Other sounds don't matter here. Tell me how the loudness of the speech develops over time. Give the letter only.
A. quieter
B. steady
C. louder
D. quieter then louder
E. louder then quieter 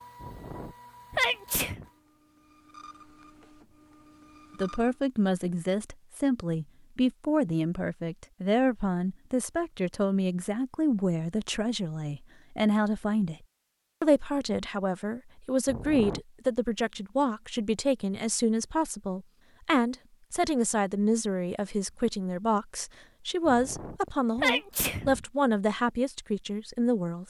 B.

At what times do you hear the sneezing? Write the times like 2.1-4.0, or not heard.
0.2-1.9, 15.7-16.2, 23.4-25.2.